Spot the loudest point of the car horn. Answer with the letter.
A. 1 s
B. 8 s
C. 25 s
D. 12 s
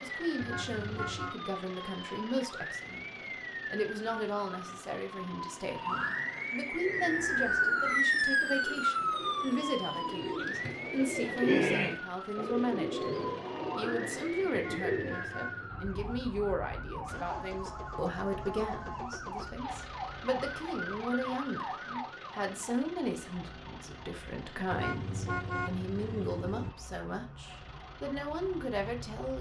C.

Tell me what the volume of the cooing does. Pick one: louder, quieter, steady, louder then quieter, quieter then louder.
louder then quieter.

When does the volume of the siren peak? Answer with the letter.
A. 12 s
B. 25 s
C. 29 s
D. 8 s
D.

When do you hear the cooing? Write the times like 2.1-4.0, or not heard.
6.8-15.2.